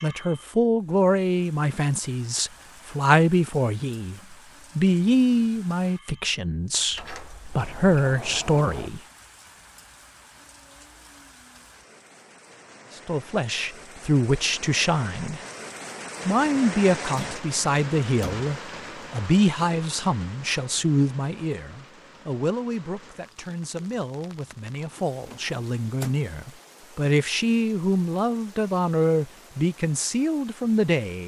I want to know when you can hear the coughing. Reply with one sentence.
You can't hear the coughing here.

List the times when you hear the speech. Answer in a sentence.
The speech can be heard from 0.0 to 9.0 s, from 13.1 to 15.4 s and from 16.2 to 31.2 s.